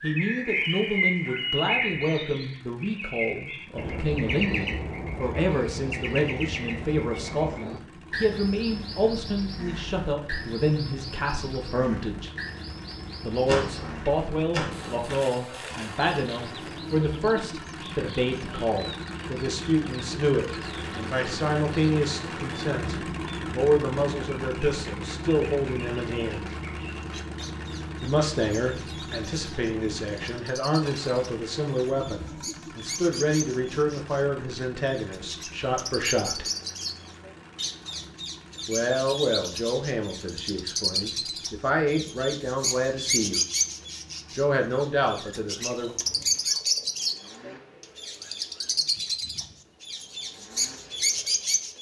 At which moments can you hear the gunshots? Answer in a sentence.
The gunshots can be heard from 13.4 to 15.3 s.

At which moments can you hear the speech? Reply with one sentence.
The speech can be heard from 0.0 to 12.3 s, from 13.2 to 26.4 s, from 28.0 to 36.5 s, from 38.6 to 43.5 s and from 44.4 to 45.9 s.